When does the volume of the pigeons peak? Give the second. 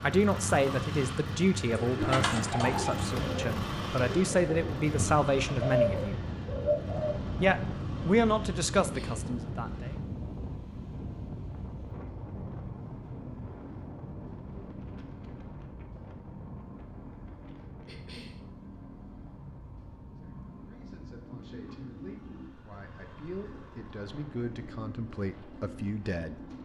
6 s.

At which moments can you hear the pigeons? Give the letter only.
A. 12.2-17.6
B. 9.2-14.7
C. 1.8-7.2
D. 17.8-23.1
C.